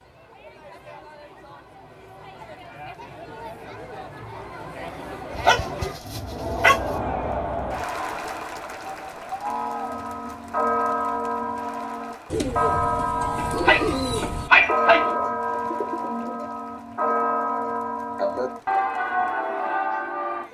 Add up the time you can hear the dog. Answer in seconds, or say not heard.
3 s.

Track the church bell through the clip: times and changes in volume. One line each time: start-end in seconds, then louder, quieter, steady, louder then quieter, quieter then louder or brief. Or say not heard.
9.4-20.4 steady.